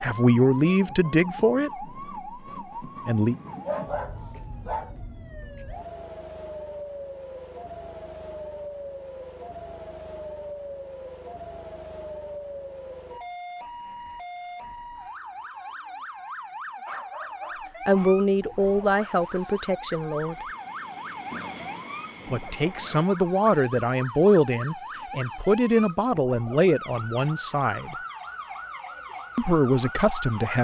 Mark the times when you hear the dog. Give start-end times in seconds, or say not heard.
3.6-5.0, 16.9-18.2, 21.3-23.1.